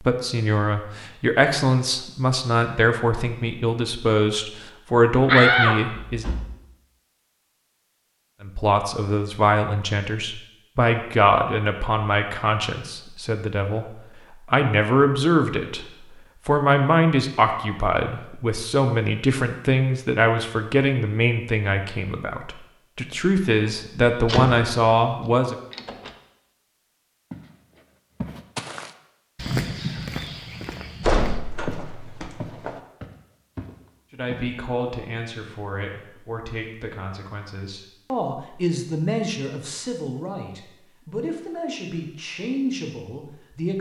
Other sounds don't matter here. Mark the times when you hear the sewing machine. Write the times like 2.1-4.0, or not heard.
not heard.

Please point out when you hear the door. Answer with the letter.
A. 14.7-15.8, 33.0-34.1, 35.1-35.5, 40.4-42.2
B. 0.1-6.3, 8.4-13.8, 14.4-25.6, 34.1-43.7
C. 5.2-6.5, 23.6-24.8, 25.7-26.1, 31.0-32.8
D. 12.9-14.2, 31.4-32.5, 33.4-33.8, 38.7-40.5
C.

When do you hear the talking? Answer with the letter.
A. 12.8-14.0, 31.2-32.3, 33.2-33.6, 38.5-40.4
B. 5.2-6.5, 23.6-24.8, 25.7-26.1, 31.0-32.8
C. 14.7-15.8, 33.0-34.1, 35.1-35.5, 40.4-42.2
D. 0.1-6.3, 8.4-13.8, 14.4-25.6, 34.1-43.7
D.